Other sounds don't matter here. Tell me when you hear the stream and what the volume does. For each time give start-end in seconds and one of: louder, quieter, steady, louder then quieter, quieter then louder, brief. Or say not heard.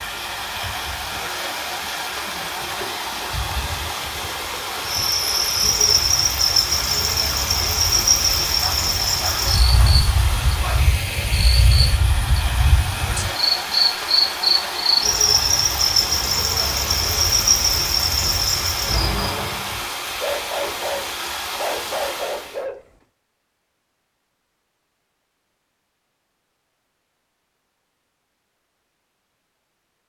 0.0-22.6 steady.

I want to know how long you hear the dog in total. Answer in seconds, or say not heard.
5 s.